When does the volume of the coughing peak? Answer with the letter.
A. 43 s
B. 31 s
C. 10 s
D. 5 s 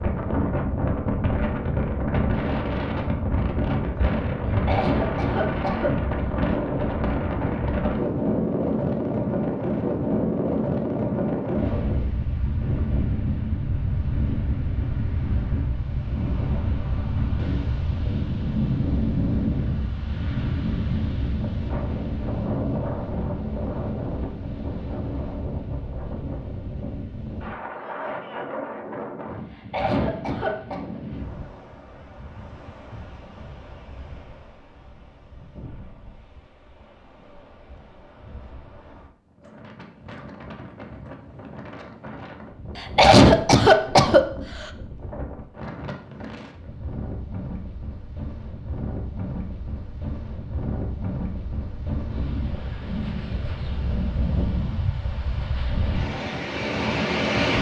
A.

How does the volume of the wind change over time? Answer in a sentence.
The volume of the wind goes down, then up.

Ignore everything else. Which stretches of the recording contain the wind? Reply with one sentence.
The wind can be heard from 0.0 to 57.5 s.